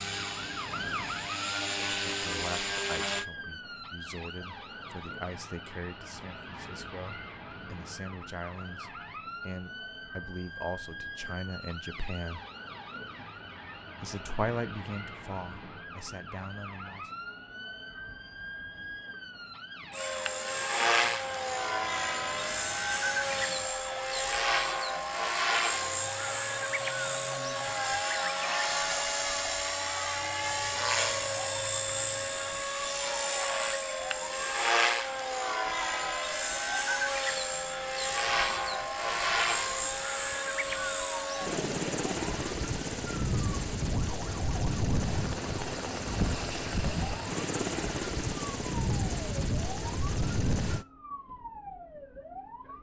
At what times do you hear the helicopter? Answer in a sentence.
You can hear the helicopter from 0.0 to 3.2 s and from 19.9 to 50.9 s.